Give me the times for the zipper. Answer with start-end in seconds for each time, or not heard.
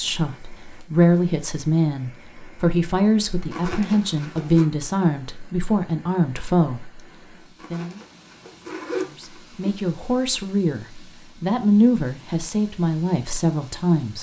3.5-4.7, 7.6-9.8.